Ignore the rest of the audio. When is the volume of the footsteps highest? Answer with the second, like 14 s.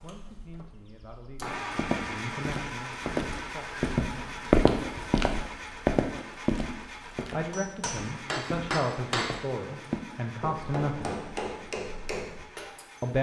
5 s.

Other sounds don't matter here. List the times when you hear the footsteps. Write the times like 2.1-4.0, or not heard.
1.6-10.0.